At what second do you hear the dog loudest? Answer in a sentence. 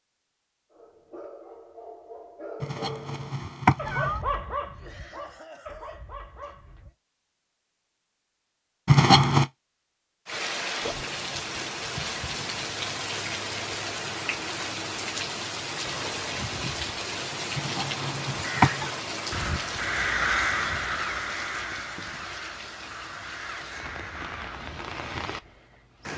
The loudest moment of the dog is at 4 seconds.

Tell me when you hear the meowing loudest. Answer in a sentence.
The loudest moment of the meowing is at 9 seconds.